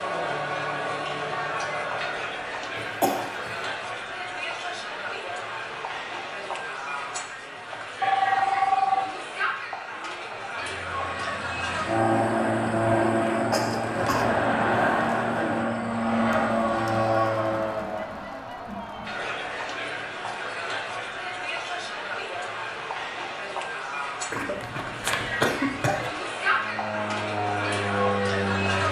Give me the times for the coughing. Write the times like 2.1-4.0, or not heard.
2.8-3.5, 13.5-14.3, 24.3-26.1.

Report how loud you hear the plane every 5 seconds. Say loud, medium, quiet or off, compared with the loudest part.
off, off, loud, loud, off, loud.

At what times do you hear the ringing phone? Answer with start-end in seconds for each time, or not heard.
8.0-9.0.